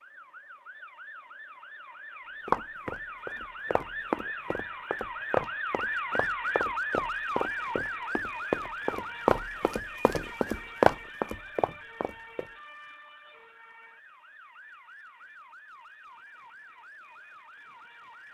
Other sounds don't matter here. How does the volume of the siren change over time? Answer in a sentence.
The loudness of the siren goes up, then down.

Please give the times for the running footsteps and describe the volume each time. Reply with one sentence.
You can hear the running footsteps from 2.5 to 12.5 s, getting louder.